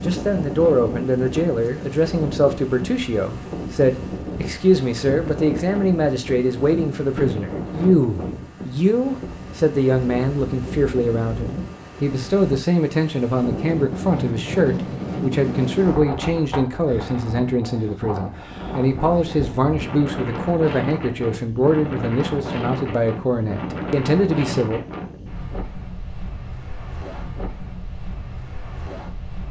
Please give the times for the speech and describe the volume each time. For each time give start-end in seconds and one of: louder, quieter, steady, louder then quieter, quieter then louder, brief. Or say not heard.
0.1-24.8 steady.